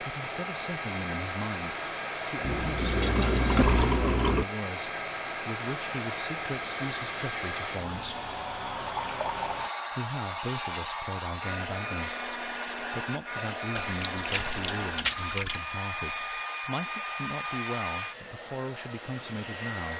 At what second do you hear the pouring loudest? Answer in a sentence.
The loudest moment of the pouring is at 4 seconds.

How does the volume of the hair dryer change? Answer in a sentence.
The volume of the hair dryer stays about the same.